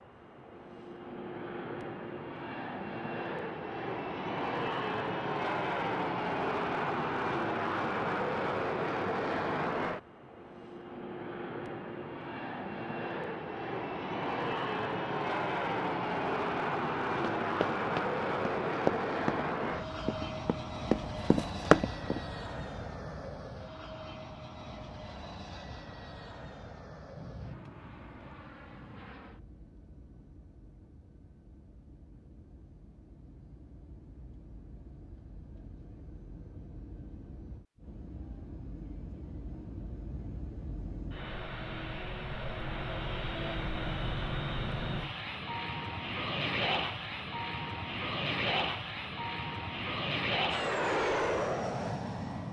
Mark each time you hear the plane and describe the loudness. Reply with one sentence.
You can hear the plane from 0.0 to 52.4 s, getting quieter then louder.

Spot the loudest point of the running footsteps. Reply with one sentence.
The volume of the running footsteps peaks at 22 seconds.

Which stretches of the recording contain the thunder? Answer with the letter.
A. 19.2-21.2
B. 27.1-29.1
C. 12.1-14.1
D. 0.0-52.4
B.